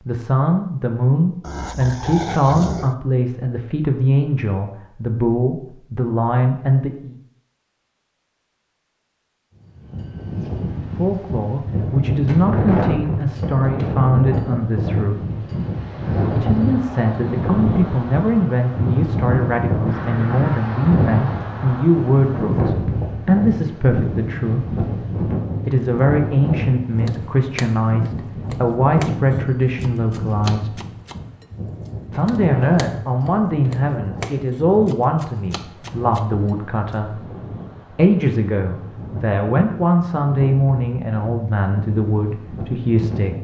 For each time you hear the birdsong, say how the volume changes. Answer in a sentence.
The birdsong can't be heard in this clip.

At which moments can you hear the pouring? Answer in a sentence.
You can't hear the pouring here.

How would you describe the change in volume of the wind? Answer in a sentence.
The volume of the wind goes down.